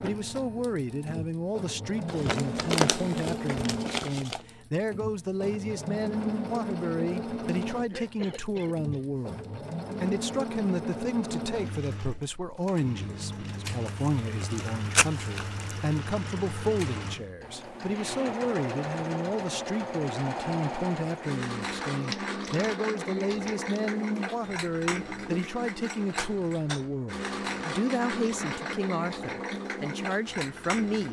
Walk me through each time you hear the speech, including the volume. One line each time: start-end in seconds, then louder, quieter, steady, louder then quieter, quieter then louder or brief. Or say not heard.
0.0-31.0 steady.